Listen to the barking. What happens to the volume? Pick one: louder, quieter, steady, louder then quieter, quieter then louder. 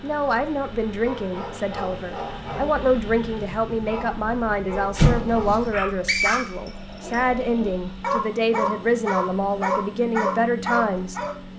louder.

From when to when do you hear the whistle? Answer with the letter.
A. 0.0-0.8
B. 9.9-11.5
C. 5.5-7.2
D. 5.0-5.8
C.